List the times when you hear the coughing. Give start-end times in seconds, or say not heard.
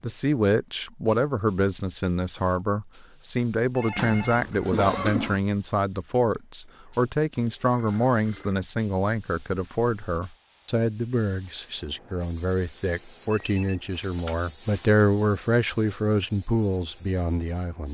4.0-5.4.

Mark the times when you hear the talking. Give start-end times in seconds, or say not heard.
0.0-17.8.